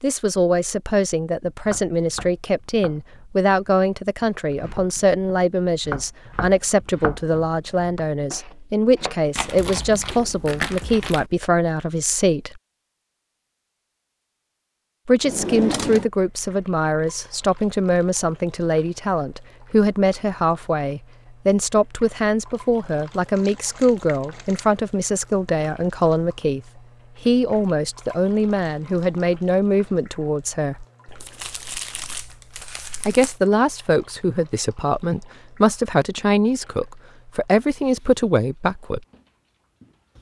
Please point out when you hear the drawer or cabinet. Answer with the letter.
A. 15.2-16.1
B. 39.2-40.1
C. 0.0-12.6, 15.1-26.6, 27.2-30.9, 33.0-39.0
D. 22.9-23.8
A.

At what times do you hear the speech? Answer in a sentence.
You can hear the speech from 0.0 to 12.6 s, from 15.1 to 26.6 s, from 27.2 to 30.9 s and from 33.0 to 39.0 s.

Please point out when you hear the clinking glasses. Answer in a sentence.
The clinking glasses can't be heard in this clip.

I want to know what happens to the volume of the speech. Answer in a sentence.
The loudness of the speech stays about the same.